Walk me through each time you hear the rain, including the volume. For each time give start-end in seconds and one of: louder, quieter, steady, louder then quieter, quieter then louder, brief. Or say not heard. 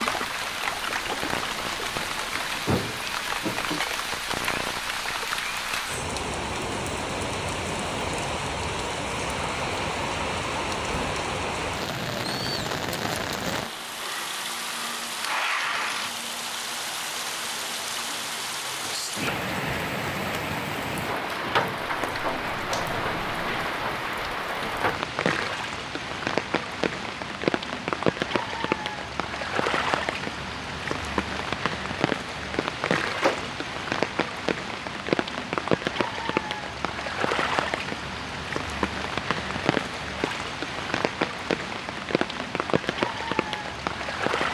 0.0-44.4 steady.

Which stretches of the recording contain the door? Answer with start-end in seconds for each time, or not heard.
2.6-3.9, 21.8-23.6, 33.1-33.7.